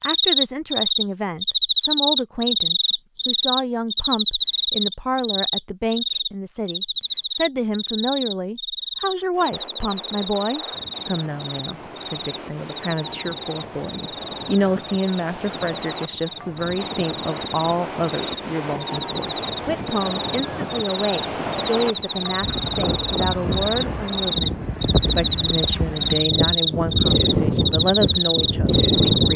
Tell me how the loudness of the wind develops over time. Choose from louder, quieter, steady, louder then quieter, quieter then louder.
louder.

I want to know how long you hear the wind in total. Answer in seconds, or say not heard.
20 s.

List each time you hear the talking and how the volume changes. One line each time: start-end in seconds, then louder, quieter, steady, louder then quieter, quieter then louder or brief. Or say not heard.
0.0-29.3 steady.